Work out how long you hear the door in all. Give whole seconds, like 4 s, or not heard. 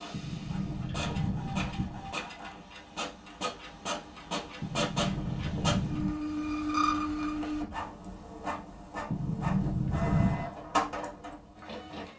5 s.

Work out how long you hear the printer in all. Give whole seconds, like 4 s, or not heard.
12 s.